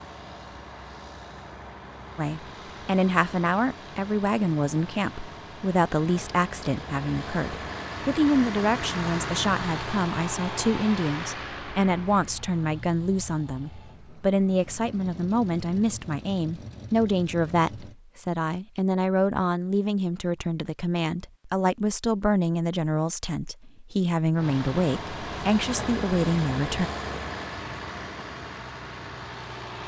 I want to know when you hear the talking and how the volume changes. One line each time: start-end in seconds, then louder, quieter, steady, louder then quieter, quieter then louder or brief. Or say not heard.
2.1-26.9 steady.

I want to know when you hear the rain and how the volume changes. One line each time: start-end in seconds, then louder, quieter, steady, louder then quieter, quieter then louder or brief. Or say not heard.
not heard.